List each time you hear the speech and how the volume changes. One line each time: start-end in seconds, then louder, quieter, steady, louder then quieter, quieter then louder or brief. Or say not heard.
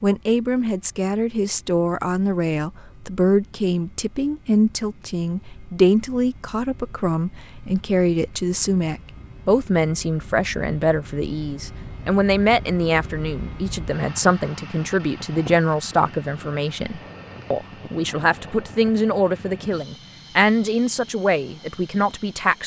0.0-22.6 steady.